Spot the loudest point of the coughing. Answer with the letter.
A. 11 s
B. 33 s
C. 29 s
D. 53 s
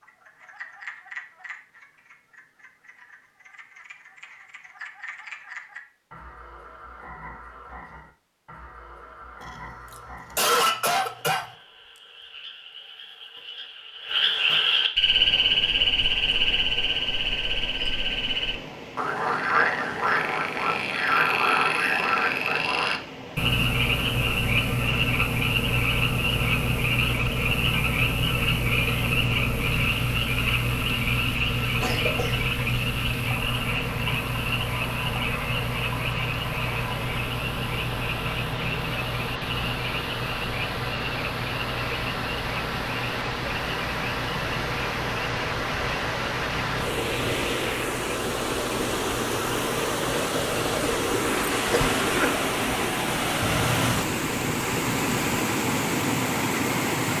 A.